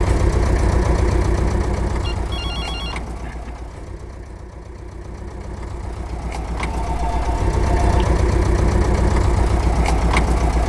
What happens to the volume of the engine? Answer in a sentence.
The loudness of the engine goes down, then up.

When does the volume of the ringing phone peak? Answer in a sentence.
The volume of the ringing phone peaks at 8 seconds.